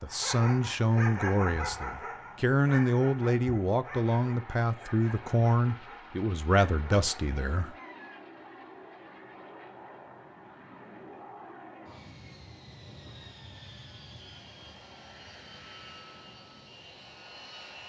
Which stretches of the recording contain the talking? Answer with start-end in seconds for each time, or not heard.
0.0-7.8.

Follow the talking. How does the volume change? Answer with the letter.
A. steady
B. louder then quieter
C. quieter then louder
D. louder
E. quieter
A.